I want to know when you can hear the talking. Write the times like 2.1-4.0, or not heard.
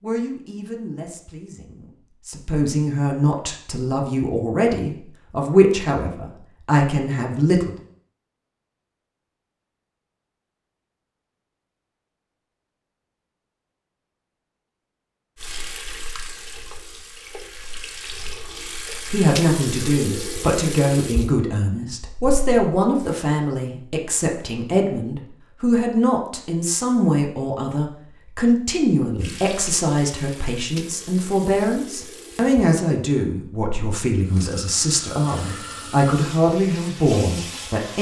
0.0-7.7, 19.1-37.9.